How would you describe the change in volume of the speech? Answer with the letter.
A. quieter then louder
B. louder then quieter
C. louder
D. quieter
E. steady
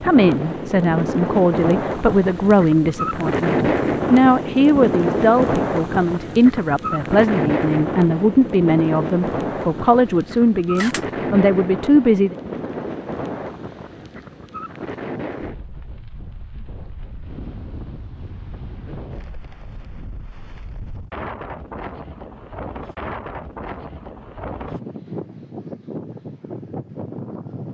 E.